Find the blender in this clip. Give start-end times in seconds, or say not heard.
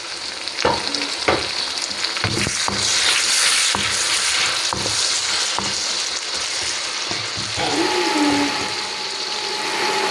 7.5-10.0.